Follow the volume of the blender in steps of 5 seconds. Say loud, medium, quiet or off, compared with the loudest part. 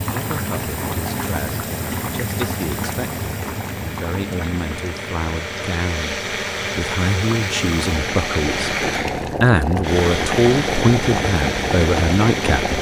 medium, loud, loud.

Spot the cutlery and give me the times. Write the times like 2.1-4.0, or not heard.
not heard.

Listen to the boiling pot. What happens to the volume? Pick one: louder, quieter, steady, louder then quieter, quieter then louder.
quieter then louder.